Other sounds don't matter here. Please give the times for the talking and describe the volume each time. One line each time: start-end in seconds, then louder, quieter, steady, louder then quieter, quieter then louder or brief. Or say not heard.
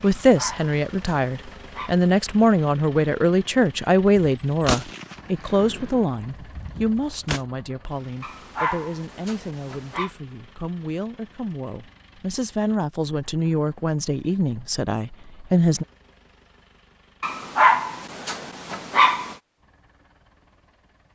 0.0-15.8 quieter then louder.